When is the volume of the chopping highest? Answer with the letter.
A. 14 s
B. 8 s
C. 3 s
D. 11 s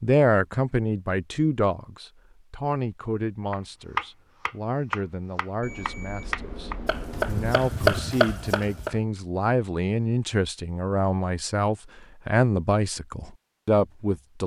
B.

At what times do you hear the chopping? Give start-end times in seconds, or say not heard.
3.5-9.0.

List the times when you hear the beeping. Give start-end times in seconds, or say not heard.
5.6-7.5.